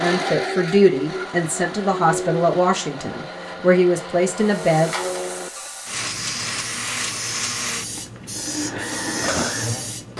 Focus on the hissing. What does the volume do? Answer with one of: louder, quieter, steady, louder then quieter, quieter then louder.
louder.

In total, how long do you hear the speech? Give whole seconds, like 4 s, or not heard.
5 s.